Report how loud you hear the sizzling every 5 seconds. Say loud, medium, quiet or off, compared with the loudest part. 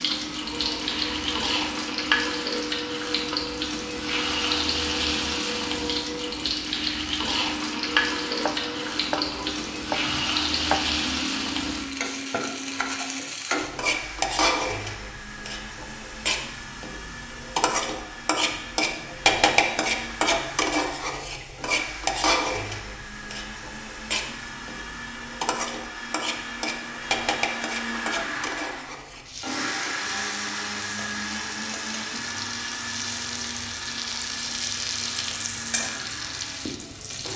loud, loud, loud, loud, loud, medium, medium, medium.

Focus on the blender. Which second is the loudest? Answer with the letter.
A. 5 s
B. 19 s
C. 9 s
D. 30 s
D.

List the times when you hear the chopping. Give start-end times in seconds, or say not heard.
8.4-10.8.